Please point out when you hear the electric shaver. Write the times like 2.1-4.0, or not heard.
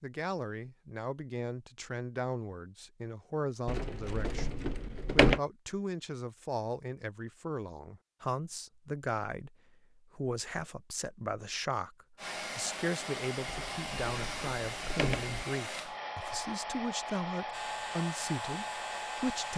17.5-19.5.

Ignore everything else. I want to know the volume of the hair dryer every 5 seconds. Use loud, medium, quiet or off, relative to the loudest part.
off, off, loud, loud.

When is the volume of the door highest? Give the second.
5 s.